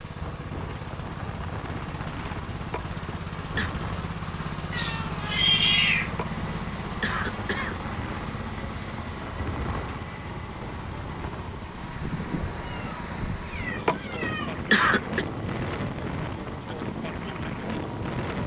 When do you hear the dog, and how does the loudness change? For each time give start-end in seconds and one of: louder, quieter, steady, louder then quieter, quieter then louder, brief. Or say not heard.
not heard.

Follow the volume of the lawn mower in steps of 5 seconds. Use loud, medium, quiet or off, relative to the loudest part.
loud, loud, medium, medium.